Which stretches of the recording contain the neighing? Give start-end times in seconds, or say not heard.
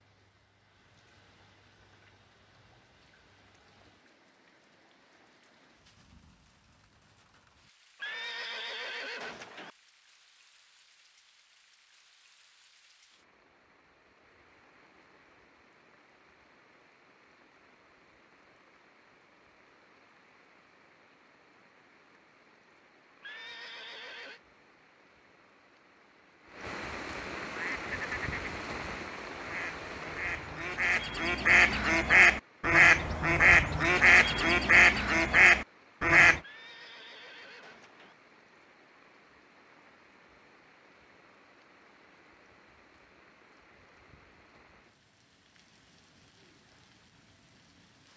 8.0-9.7, 23.2-24.4, 36.4-38.1.